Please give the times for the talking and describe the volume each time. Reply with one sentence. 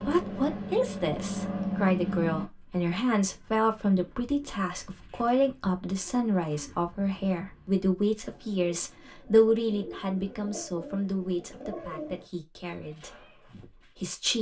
The talking can be heard from 0.0 to 14.3 s, getting quieter.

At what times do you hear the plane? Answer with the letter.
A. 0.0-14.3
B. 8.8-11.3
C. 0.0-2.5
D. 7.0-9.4
C.